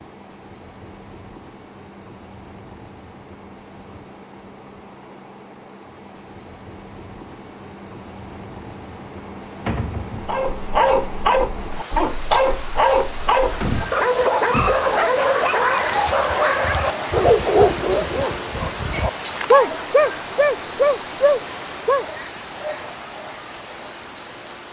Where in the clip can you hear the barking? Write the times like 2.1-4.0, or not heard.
10.2-22.1.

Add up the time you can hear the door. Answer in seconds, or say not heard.
2 s.